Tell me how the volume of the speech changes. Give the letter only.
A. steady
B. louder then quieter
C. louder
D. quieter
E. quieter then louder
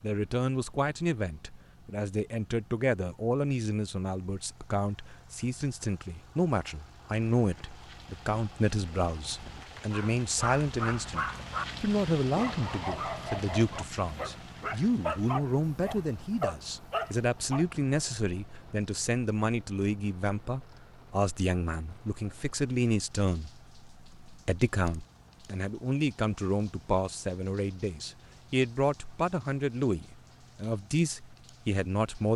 A.